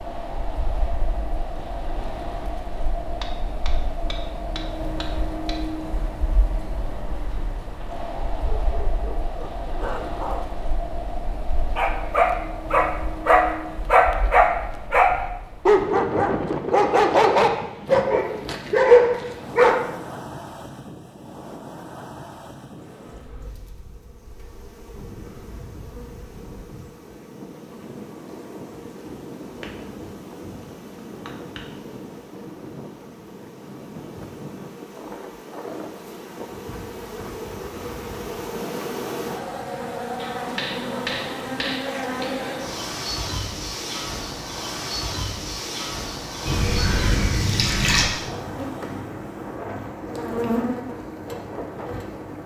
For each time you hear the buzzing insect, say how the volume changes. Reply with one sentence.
You can hear the buzzing insect from 22.8 to 52.4 s, getting louder.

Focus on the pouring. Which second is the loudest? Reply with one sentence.
The loudest moment of the pouring is at 48 seconds.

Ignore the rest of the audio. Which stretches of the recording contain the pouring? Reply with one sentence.
You can hear the pouring from 46.5 to 48.1 s.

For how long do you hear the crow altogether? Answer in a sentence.
The crow can't be heard in this clip.